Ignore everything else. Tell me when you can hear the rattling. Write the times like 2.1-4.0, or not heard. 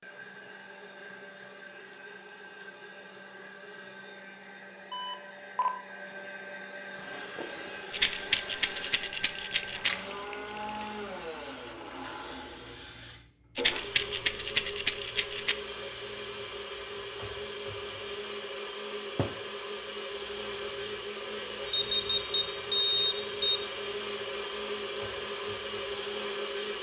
7.9-9.9, 13.6-15.6.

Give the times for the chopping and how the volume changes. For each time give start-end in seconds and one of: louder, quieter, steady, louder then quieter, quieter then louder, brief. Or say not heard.
not heard.